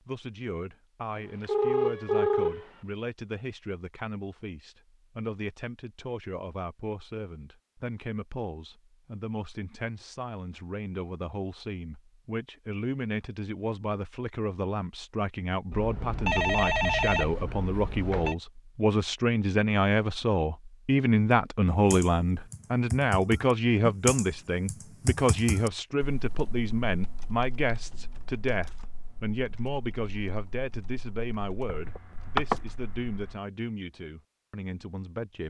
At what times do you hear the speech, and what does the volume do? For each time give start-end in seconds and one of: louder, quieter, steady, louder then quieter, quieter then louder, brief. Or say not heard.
0.1-35.4 louder then quieter.